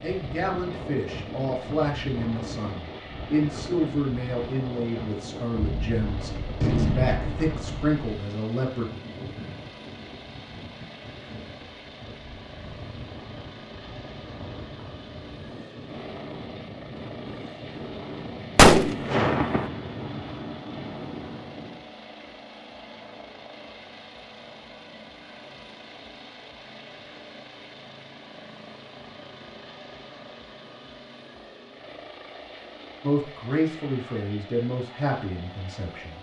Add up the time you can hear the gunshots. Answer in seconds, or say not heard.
4 s.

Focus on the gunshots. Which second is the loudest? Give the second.
19 s.